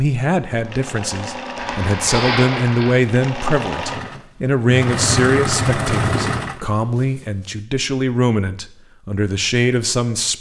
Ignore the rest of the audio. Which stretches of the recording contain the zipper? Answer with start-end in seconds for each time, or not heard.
1.6-3.0.